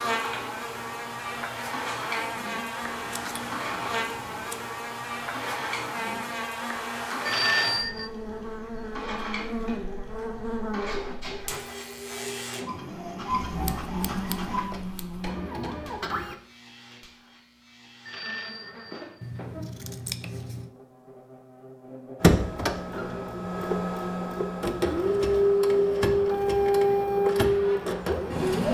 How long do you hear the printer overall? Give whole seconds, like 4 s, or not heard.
23 s.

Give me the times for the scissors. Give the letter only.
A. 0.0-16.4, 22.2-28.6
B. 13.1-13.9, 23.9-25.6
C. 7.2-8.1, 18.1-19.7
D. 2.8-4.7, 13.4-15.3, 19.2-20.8
D.